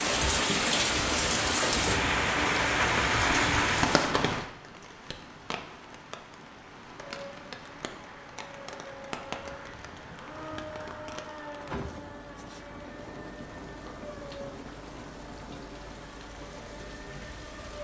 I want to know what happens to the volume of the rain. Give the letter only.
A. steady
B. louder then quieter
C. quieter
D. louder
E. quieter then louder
C.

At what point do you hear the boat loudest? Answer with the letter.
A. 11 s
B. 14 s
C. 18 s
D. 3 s
A.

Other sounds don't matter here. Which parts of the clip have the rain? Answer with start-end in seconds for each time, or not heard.
0.0-17.7.